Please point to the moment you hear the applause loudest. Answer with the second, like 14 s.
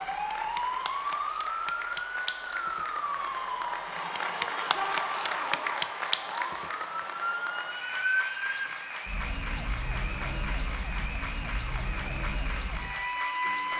6 s.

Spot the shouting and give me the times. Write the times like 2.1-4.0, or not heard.
4.7-5.6.